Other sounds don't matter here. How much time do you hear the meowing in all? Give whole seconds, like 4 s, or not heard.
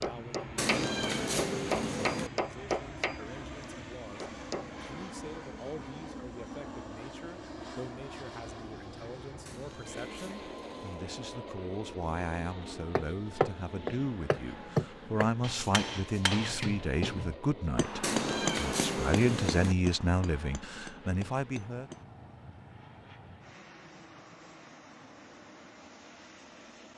5 s.